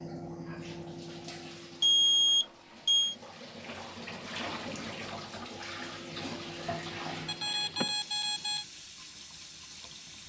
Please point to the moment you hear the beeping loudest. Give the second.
2 s.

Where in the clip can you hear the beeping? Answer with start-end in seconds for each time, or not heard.
1.8-3.1, 7.2-8.7.